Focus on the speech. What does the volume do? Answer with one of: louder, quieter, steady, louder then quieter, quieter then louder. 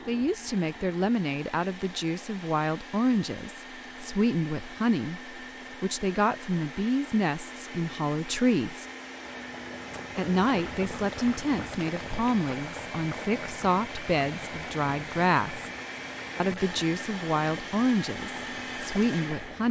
steady.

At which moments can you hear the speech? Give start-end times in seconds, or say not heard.
0.1-8.8, 10.2-15.7, 16.4-19.6.